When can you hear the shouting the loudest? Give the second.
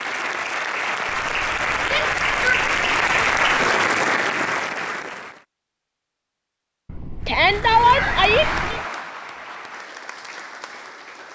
8 s.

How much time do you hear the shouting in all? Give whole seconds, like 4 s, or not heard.
2 s.